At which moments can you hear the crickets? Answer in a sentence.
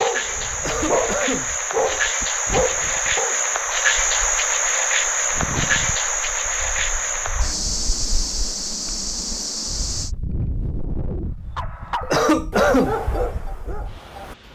The crickets can be heard from 0.0 to 10.2 s.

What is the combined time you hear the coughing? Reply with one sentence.
The coughing can be heard for 2 seconds in total.